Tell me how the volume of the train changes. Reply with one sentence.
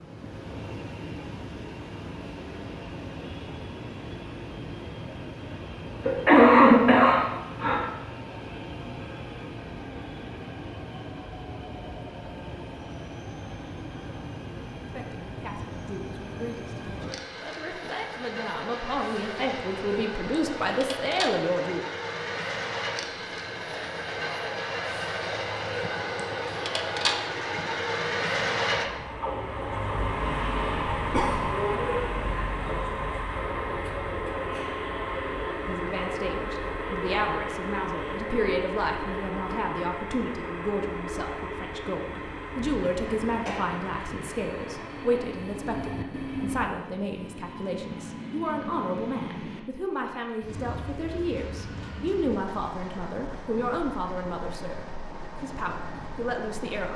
The volume of the train goes up, then down.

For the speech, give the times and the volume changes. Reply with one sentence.
The speech can be heard from 14.8 to 21.9 s, getting louder; and from 35.6 to 56.9 s, at a steady volume.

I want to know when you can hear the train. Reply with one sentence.
The train can be heard from 0.0 to 56.9 s.